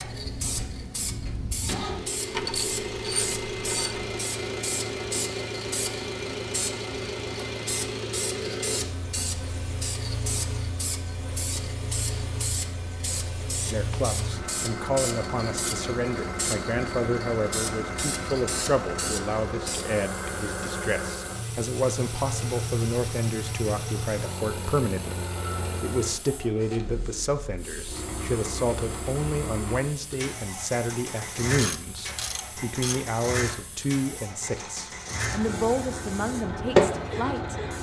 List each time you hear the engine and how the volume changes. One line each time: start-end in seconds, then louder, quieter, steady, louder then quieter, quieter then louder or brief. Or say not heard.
0.0-37.7 steady.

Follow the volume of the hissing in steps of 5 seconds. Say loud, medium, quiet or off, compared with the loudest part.
medium, medium, medium, medium, quiet, quiet, quiet, loud.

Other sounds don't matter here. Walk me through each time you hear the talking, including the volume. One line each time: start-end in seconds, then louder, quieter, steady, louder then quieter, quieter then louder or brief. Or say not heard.
13.7-37.5 steady.